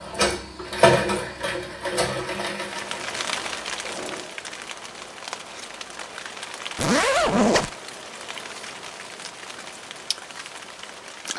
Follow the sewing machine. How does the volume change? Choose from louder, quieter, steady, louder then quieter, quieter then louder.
quieter.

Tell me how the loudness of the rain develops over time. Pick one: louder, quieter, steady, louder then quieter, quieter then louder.
quieter.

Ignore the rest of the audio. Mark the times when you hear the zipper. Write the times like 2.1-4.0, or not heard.
6.8-7.7.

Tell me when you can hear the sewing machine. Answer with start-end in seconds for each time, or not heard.
0.0-4.3.